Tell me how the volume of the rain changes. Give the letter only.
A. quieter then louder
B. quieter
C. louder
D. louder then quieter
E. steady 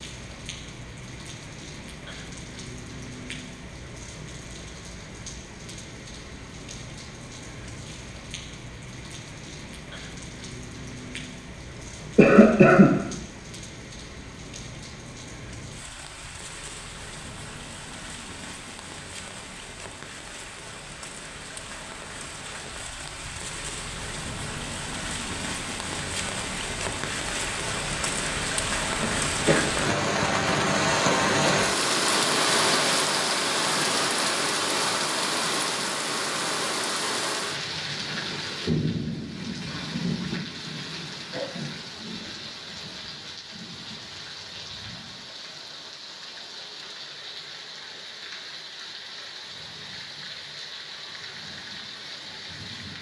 D.